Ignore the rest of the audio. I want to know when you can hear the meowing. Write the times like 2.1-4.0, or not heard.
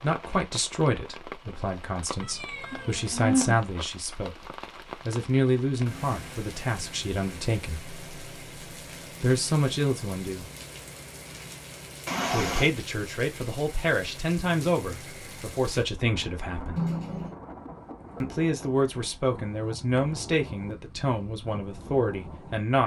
2.2-3.7, 12.1-12.7, 16.8-17.4.